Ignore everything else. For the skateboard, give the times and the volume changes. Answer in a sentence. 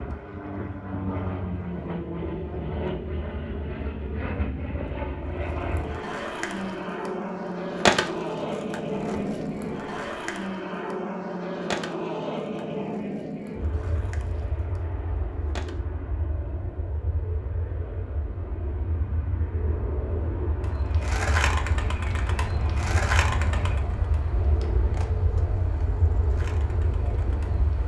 You can hear the skateboard from 5.3 to 15.8 s, getting louder then quieter; and from 20.6 to 27.6 s, getting quieter.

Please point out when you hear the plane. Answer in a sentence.
The plane can be heard from 0.0 to 27.8 s.